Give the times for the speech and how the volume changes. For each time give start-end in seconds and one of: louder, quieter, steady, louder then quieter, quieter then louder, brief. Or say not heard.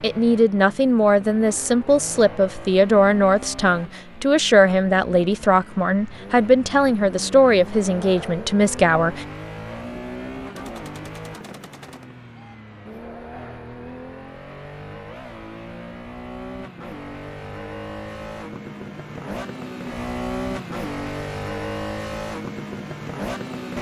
0.0-9.2 steady.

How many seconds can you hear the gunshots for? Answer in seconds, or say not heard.
2 s.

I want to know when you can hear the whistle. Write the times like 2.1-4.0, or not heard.
not heard.